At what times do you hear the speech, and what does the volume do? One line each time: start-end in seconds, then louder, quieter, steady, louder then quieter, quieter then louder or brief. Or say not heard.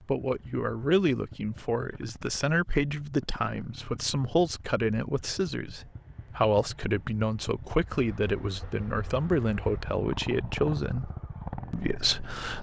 0.1-11.1 steady
11.7-12.5 brief.